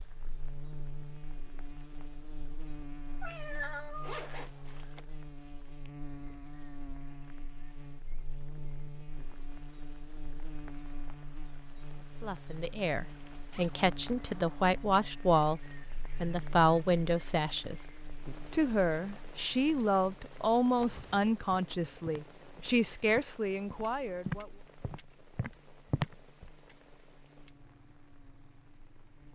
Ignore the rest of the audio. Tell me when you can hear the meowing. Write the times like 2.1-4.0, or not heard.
3.2-4.2.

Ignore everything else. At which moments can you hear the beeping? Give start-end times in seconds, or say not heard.
not heard.